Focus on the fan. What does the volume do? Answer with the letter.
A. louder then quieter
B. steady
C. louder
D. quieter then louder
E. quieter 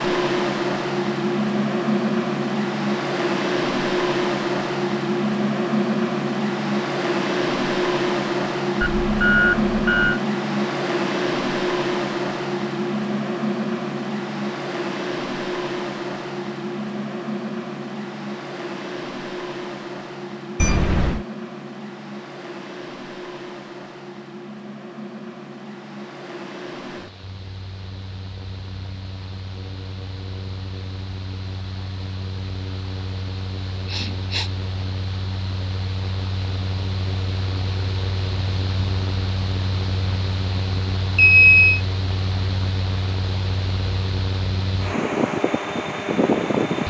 D.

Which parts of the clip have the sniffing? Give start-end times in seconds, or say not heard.
33.9-34.5.